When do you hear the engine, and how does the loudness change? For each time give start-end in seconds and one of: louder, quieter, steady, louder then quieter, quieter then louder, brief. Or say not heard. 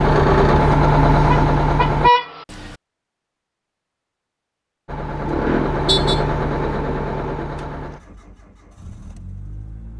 0.0-2.1 brief
4.8-9.9 quieter.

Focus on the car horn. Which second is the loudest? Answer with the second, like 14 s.
2 s.